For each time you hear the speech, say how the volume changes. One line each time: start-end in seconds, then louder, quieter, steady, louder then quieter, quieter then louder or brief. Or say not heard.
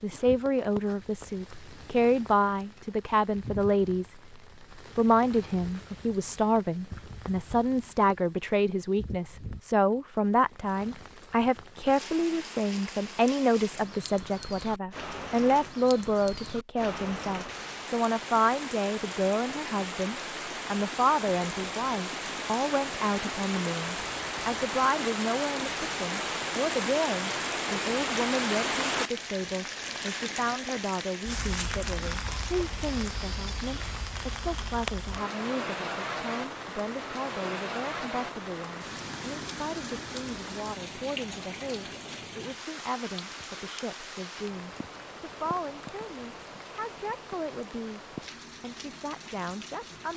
0.0-48.0 quieter
48.6-50.1 brief.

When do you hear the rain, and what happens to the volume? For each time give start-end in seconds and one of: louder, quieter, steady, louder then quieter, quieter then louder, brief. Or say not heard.
0.0-50.1 louder then quieter.